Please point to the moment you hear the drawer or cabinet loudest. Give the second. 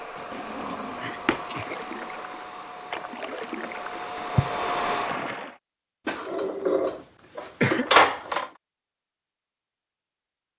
8 s.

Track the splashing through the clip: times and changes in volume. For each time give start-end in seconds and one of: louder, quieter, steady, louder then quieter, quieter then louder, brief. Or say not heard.
0.0-5.5 louder.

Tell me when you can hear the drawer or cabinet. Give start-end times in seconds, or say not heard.
0.3-1.4, 6.0-8.5.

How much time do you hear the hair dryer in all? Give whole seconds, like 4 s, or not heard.
5 s.